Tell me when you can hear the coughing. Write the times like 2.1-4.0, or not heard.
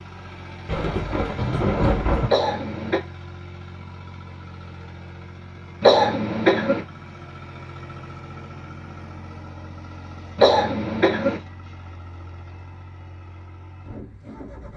2.2-3.0, 5.8-6.8, 10.3-11.4.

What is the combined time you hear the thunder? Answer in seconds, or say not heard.
2 s.